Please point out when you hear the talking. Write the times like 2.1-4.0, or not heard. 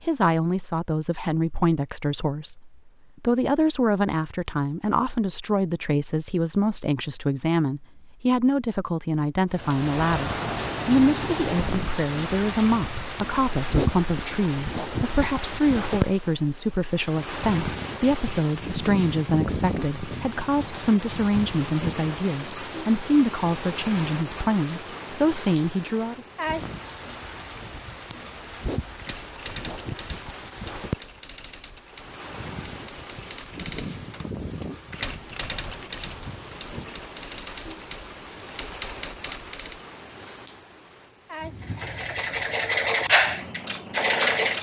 0.1-26.2.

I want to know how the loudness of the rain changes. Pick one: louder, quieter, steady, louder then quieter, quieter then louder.
quieter.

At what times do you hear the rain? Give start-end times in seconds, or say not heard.
9.5-44.5.